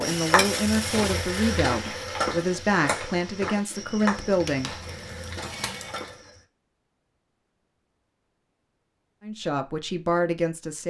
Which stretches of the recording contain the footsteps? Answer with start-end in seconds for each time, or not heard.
0.0-6.5.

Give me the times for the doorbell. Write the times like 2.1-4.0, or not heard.
not heard.